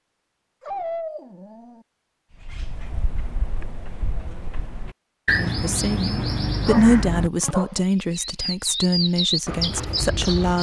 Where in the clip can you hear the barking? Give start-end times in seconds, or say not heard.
0.6-1.9, 6.7-7.8.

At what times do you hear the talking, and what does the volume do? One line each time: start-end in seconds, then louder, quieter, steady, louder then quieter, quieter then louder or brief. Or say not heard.
5.3-10.5 louder then quieter.